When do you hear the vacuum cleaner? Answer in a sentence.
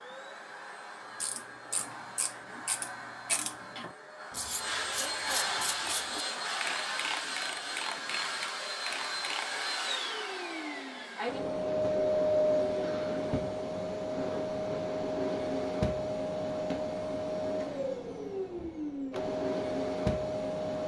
You can hear the vacuum cleaner from 0.0 to 20.8 s.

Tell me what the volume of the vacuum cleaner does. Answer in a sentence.
The loudness of the vacuum cleaner goes up.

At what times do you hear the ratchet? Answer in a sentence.
The ratchet can be heard from 1.2 to 9.8 s.